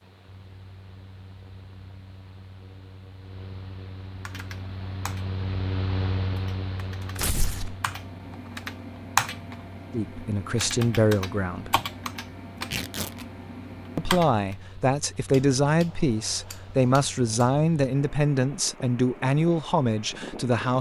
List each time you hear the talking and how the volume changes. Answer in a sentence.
You can hear the talking briefly from 9.9 to 11.8 s; and from 13.9 to 20.7 s, at a steady volume.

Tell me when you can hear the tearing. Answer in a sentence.
You can hear the tearing from 7.2 to 7.8 s and from 12.7 to 13.2 s.